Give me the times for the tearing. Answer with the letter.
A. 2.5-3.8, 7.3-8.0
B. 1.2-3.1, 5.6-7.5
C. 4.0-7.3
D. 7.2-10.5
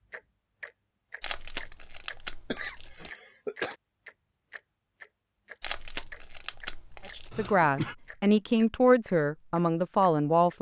B.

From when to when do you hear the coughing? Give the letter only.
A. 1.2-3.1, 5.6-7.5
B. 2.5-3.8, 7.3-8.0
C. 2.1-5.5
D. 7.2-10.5
B.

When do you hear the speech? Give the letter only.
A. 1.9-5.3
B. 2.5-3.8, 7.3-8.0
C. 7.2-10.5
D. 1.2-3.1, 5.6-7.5
C.